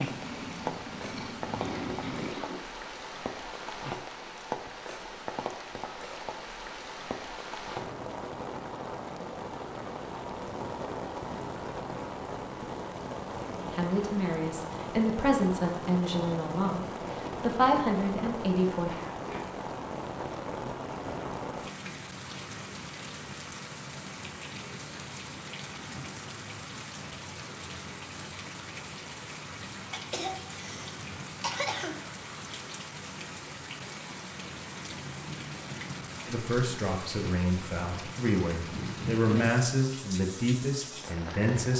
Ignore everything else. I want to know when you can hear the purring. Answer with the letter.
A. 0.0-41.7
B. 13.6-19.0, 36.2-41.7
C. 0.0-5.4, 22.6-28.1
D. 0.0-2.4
D.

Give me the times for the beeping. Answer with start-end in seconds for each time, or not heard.
not heard.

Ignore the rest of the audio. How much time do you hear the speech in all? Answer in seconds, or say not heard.
11 s.